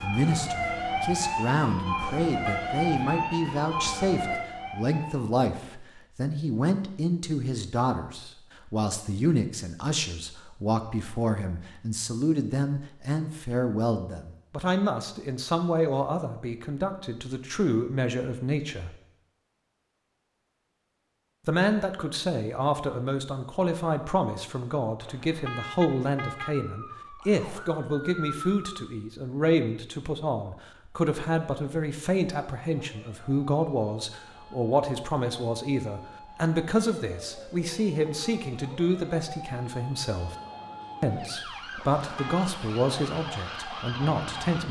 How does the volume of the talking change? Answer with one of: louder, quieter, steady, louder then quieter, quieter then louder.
steady.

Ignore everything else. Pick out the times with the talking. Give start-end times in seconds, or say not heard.
0.0-18.9, 21.4-40.4, 41.0-44.6.